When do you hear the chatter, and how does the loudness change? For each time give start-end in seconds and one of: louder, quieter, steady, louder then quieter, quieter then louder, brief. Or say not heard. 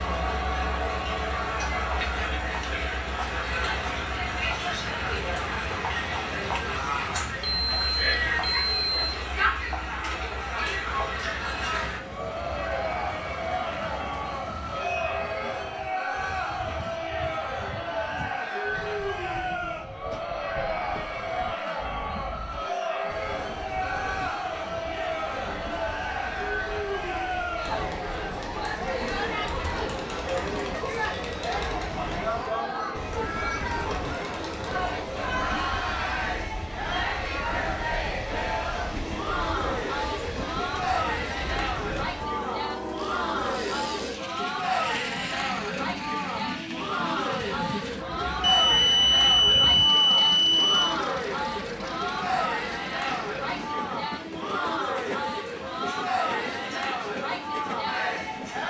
0.0-58.6 steady.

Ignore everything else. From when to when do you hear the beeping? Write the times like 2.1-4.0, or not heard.
7.4-8.9, 48.4-51.0.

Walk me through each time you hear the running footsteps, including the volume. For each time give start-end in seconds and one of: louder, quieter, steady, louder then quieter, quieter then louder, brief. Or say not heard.
not heard.